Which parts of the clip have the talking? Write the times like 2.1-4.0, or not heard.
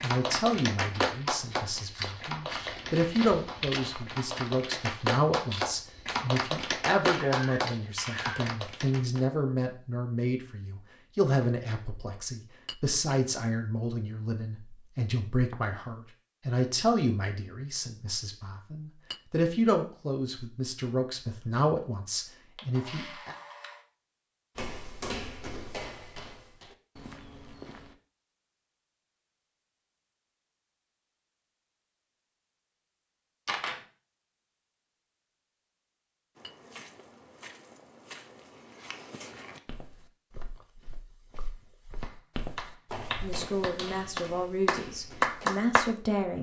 0.0-23.4, 43.2-46.3.